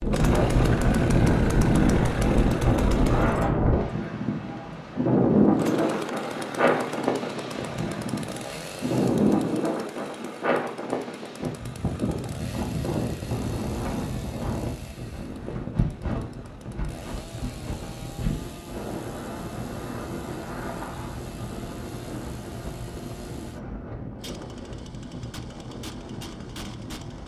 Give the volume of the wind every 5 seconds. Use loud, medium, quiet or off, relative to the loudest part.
loud, loud, medium, medium, quiet, quiet.